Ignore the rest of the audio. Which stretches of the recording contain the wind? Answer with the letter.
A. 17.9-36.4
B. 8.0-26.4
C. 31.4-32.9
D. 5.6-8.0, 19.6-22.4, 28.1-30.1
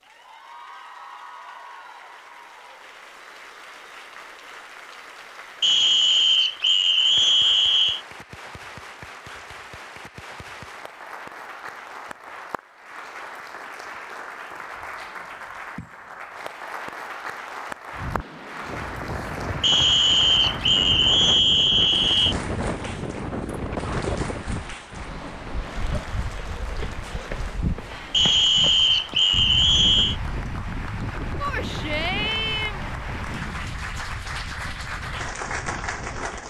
A.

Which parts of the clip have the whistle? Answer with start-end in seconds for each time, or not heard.
5.6-8.0, 19.6-22.4, 28.1-30.1.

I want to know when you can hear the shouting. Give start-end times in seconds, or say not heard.
31.4-32.9.